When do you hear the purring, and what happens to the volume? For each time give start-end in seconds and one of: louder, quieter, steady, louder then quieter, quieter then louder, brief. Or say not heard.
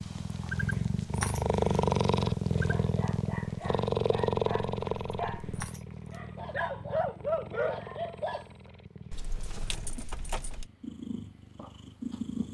0.0-12.4 quieter.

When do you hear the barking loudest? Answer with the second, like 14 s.
7 s.